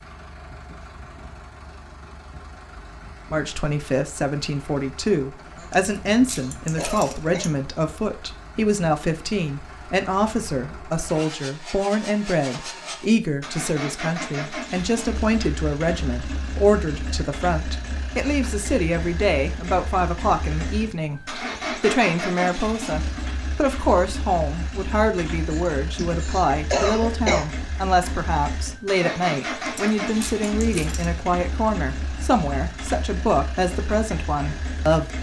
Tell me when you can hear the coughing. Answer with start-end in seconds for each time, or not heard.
5.5-7.5, 25.5-27.4.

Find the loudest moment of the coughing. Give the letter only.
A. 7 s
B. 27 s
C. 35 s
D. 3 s
B.